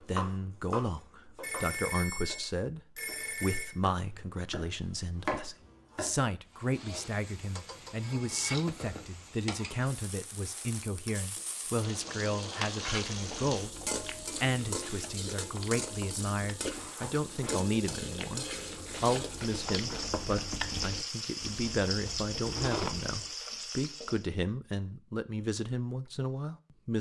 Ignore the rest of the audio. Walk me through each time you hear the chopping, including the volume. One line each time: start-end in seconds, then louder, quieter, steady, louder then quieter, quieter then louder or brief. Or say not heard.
0.0-6.2 quieter then louder.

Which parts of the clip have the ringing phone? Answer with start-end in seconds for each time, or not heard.
1.4-3.7, 16.6-18.8.